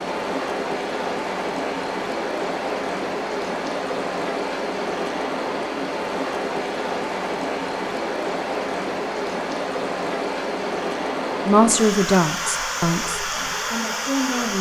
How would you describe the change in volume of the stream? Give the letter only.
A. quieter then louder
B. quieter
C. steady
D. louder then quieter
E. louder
C.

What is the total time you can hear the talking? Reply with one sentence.
You can hear the talking for 3 seconds altogether.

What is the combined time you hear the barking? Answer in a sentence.
The barking can't be heard in this clip.